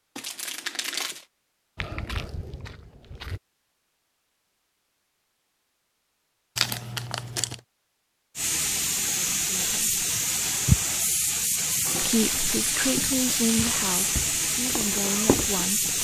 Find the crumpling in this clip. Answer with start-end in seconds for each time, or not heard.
0.1-1.2, 6.5-7.6, 11.6-14.2.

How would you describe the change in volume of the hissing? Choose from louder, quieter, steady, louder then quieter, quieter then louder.
steady.